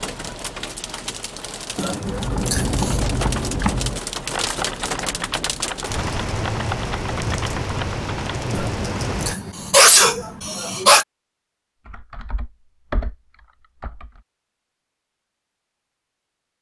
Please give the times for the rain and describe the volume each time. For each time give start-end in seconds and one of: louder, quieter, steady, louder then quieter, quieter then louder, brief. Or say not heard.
0.0-9.3 louder.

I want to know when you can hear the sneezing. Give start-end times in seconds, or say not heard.
1.8-3.0, 8.5-11.1.